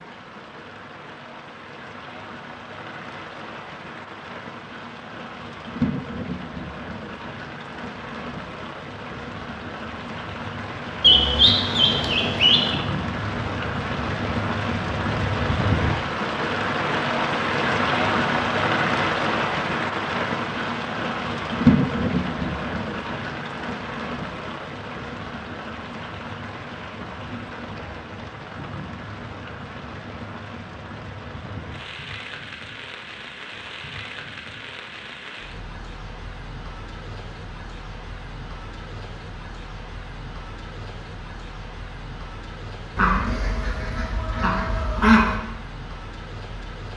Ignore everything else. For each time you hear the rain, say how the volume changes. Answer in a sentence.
You can hear the rain from 0.0 to 46.9 s, getting louder then quieter.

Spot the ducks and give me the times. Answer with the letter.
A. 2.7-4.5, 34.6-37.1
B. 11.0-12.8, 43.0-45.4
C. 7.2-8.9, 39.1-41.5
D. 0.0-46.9
B.